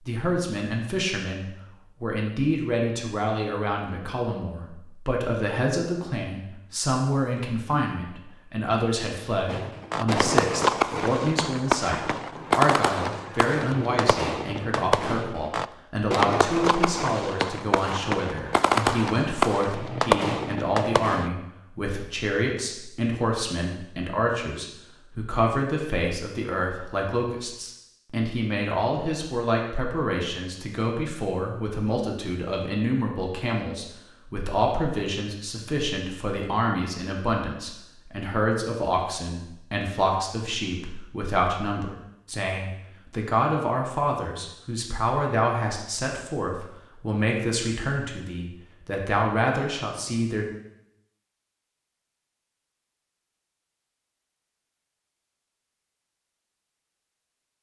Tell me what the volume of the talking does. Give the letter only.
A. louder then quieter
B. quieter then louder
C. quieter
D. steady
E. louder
D.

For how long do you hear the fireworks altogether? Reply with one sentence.
The fireworks can be heard for 12 seconds in total.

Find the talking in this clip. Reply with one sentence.
You can hear the talking from 0.1 to 50.5 s.